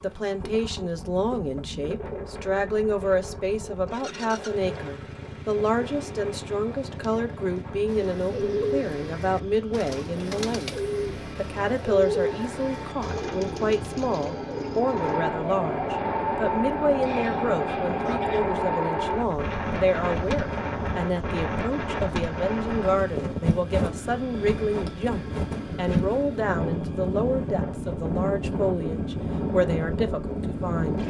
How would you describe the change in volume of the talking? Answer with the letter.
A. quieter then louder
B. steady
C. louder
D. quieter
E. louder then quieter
B.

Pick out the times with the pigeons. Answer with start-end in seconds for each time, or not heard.
7.8-15.2.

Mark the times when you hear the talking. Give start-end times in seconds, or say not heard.
0.0-31.0.